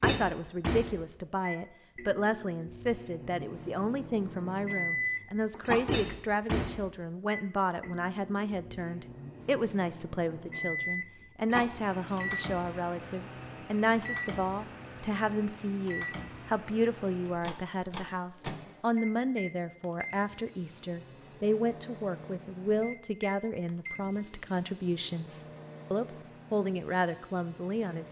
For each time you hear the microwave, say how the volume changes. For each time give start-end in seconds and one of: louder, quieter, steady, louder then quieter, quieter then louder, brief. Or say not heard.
0.0-28.0 quieter.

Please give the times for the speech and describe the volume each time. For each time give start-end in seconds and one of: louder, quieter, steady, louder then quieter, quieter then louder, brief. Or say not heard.
0.0-28.0 steady.